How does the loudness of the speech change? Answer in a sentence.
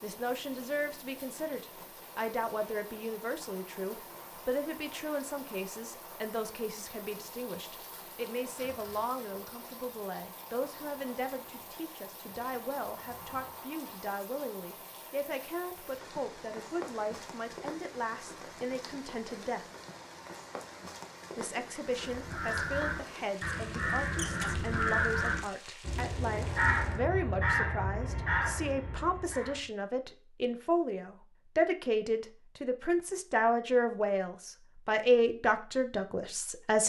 The loudness of the speech goes up.